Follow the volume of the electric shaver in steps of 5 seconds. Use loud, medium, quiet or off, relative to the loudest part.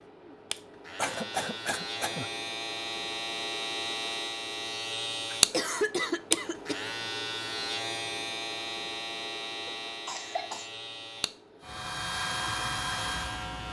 loud, loud, medium.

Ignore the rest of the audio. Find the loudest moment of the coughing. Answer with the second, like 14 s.
6 s.